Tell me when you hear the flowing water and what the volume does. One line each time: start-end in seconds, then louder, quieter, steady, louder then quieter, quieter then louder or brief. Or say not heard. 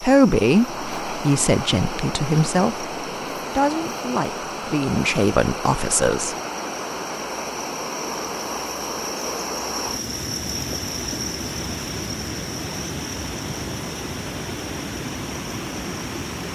0.0-16.5 steady.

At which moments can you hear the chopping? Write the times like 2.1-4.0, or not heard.
not heard.